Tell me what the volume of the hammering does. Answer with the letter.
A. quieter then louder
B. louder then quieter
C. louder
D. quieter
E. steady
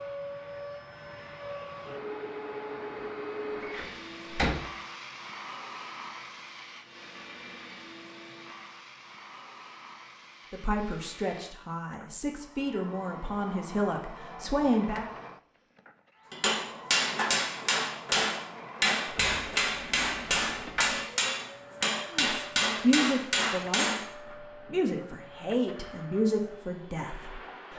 E.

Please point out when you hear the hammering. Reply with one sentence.
You can hear the hammering from 16.3 to 24.1 s.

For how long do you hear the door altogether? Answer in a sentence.
You can hear the door for 4 seconds altogether.